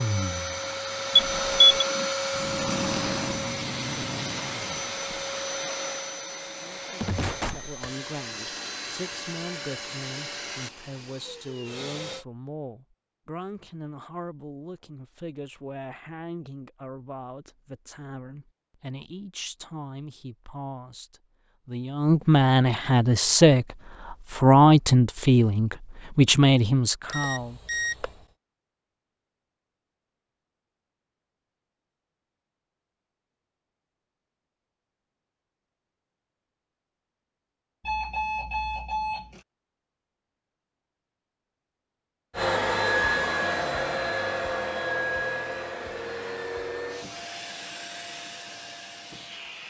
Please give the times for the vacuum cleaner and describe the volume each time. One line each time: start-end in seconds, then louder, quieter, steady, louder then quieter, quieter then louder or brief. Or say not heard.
0.0-12.2 quieter
42.4-49.6 quieter.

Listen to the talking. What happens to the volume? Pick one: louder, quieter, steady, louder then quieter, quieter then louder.
louder.